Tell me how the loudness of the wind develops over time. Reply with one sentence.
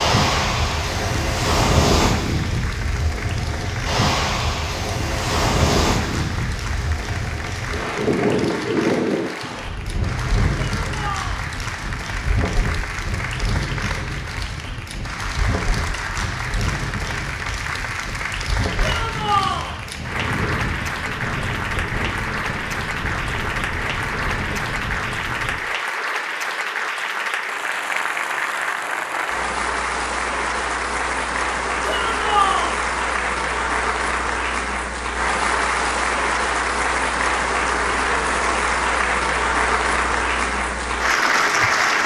The loudness of the wind goes down.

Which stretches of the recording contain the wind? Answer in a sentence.
You can hear the wind from 0.0 to 25.6 s.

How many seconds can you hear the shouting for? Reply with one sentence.
You can hear the shouting for 3 seconds altogether.